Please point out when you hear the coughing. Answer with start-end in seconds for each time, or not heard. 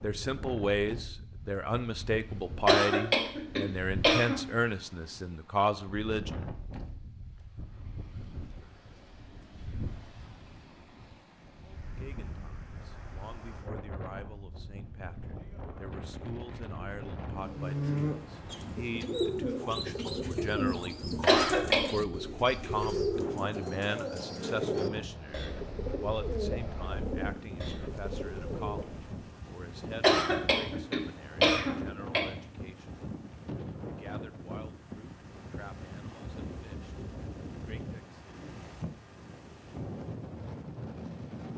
2.6-4.4, 21.2-21.9, 30.0-32.2.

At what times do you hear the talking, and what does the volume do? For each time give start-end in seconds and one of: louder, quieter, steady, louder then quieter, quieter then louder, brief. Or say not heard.
0.0-6.5 steady
11.6-33.0 louder then quieter
33.8-38.2 quieter then louder.